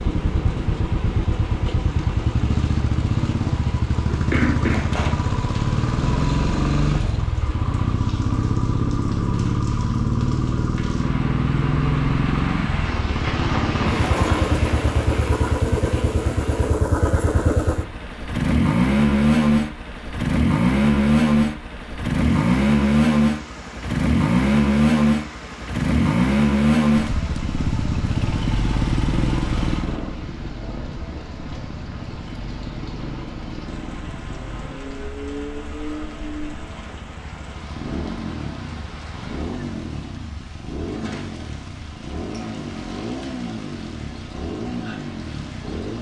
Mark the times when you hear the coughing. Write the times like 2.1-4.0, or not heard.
4.0-5.2.